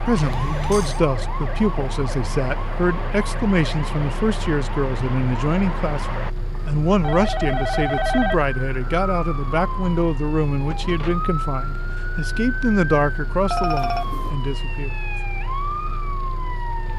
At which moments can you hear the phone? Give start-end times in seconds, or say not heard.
0.1-1.0, 7.0-8.4, 13.4-14.3.